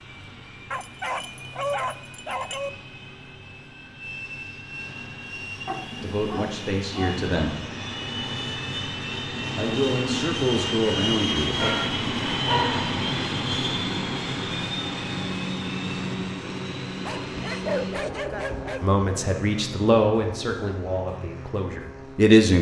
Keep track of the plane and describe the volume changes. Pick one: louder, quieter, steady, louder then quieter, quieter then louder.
louder then quieter.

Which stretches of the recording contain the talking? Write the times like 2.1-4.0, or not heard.
6.0-7.5, 9.6-11.7, 18.8-22.5.